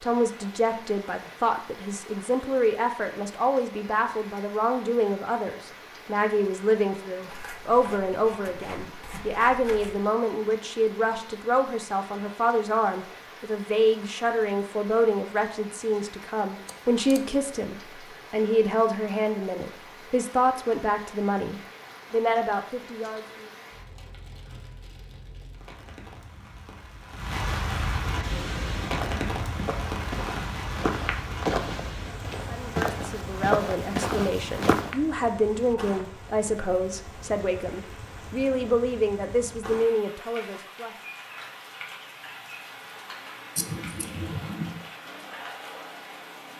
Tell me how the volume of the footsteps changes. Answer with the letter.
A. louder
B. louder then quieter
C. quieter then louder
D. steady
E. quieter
A.